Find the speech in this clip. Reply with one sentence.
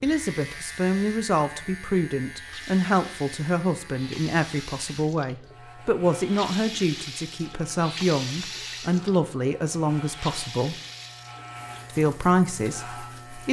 You can hear the speech from 0.0 to 10.8 s and from 11.9 to 13.4 s.